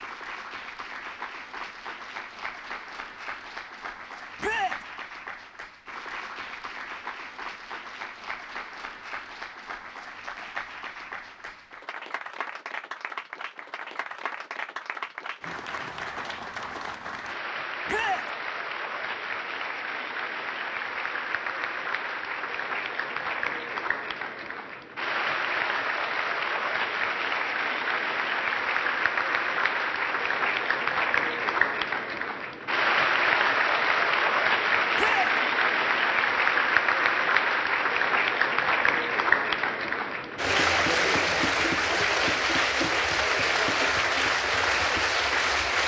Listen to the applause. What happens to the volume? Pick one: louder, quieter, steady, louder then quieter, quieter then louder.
louder.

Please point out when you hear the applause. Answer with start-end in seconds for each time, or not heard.
0.0-45.8.